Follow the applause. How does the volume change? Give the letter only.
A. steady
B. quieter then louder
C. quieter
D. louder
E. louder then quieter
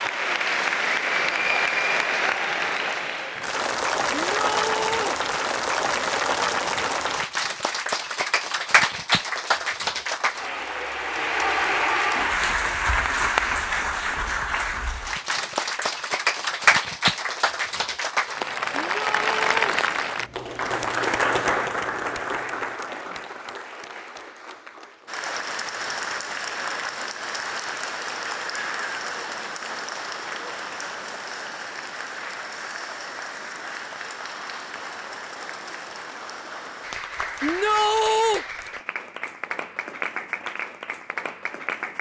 C.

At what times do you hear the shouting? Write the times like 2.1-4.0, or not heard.
4.3-5.2, 18.9-19.8, 37.4-38.5.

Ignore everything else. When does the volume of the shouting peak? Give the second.
38 s.